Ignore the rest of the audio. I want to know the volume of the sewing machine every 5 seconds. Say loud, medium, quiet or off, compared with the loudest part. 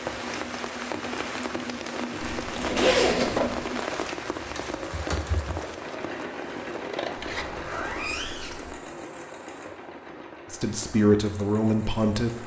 loud, loud, medium.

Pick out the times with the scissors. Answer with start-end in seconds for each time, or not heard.
6.7-7.5.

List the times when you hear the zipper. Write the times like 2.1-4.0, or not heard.
2.2-3.5, 7.2-8.8.